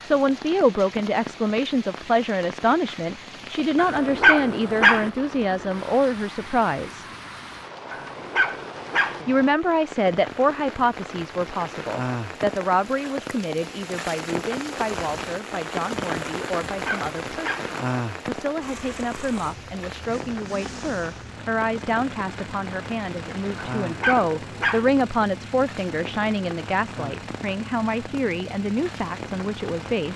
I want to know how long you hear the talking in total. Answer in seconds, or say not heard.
28 s.